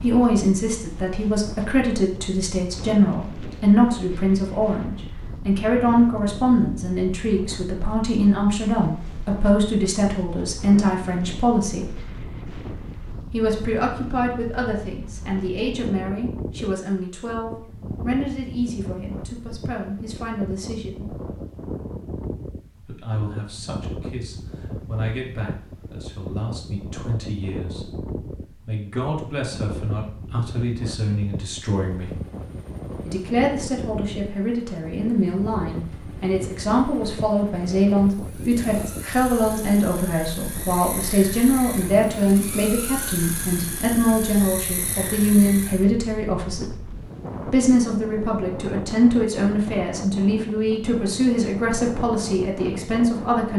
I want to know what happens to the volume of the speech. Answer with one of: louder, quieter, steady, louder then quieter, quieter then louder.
quieter then louder.